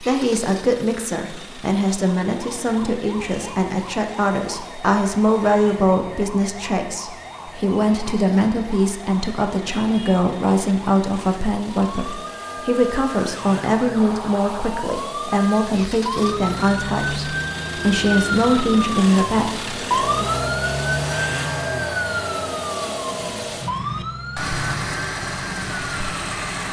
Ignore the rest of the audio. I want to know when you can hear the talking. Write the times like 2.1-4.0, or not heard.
0.0-20.3.